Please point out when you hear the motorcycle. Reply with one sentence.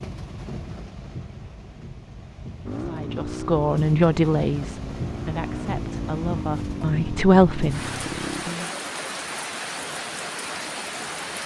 The motorcycle can be heard from 2.6 to 8.4 s.